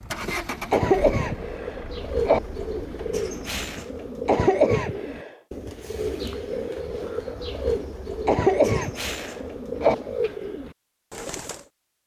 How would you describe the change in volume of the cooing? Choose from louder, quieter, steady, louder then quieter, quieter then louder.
steady.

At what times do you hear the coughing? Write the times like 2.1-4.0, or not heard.
0.7-2.4, 4.2-5.3, 8.2-9.9.